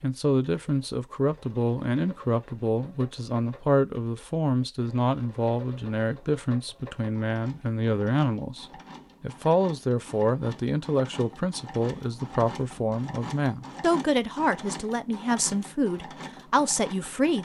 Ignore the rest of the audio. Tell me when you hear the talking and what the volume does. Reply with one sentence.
You can hear the talking from 0.0 to 17.3 s, at a steady volume.